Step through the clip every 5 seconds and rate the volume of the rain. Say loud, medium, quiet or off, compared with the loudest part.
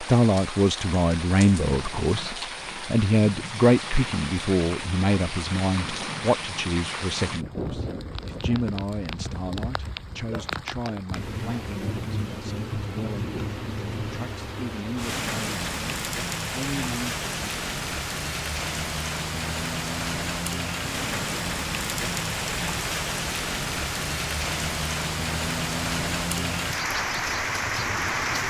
medium, medium, medium, loud, loud, loud.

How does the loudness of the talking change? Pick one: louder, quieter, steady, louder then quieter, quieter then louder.
quieter.